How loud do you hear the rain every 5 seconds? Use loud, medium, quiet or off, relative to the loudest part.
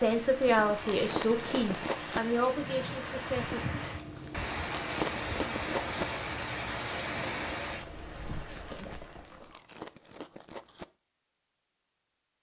loud, loud, off.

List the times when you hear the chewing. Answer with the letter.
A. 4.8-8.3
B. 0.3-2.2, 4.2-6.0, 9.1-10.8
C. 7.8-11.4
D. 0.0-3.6
B.